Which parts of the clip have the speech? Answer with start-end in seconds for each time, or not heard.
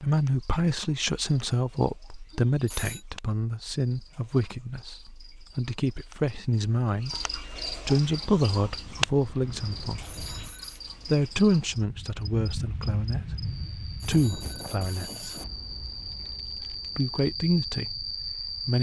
0.0-10.1, 11.1-15.3, 16.9-18.7.